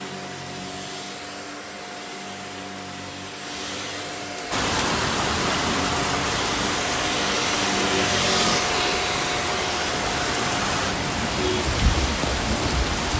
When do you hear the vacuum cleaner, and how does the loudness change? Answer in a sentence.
The vacuum cleaner can be heard from 0.0 to 13.1 s, getting louder then quieter.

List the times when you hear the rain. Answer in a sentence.
You can hear the rain from 4.5 to 13.1 s.